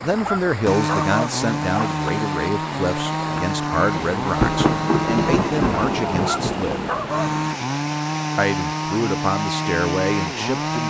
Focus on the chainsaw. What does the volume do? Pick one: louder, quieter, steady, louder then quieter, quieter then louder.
steady.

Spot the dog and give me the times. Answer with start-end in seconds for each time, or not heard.
0.1-1.9, 6.2-7.3.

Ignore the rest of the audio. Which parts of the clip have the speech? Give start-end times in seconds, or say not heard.
0.0-6.9, 8.3-10.8.